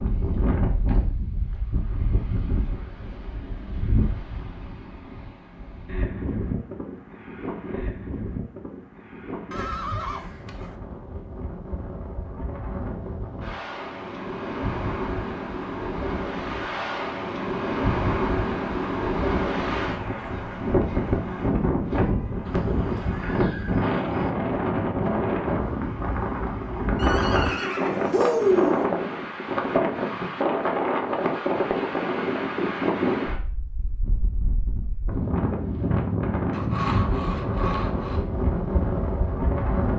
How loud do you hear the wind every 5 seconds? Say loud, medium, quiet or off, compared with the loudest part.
medium, medium, medium, loud, loud, loud, loud, loud.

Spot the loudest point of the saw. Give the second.
37 s.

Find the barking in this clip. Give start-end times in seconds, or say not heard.
not heard.